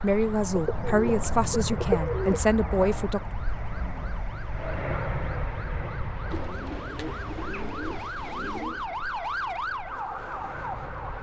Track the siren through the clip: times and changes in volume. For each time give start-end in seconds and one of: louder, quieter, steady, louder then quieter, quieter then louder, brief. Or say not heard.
0.0-11.1 louder.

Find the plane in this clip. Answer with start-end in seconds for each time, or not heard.
0.0-11.1.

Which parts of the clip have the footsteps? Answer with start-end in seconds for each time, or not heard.
not heard.